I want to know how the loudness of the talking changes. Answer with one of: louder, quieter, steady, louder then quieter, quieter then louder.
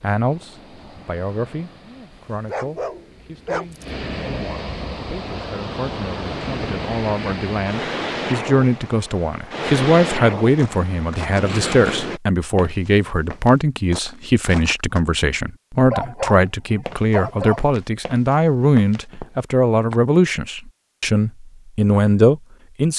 louder.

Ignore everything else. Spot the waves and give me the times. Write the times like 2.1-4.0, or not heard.
0.0-12.2.